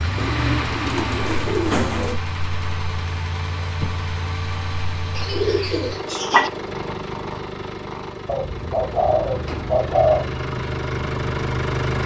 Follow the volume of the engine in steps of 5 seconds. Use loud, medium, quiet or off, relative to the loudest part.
loud, medium, loud.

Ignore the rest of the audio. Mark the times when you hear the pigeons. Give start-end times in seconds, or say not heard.
0.1-2.2, 5.2-6.5, 8.2-10.3.